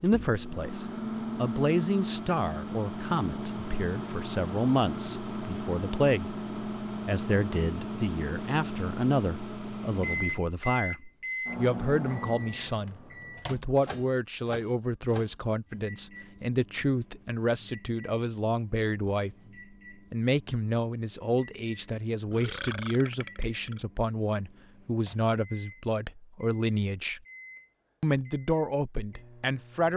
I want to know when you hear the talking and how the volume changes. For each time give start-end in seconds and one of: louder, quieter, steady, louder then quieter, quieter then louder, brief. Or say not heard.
0.0-19.4 steady
20.1-27.2 steady
28.0-29.9 brief.